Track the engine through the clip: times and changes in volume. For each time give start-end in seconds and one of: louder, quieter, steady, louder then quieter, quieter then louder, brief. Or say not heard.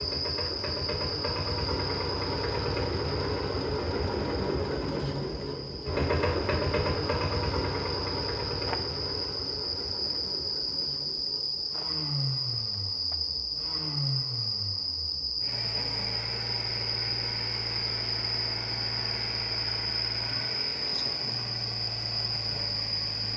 0.0-23.3 quieter.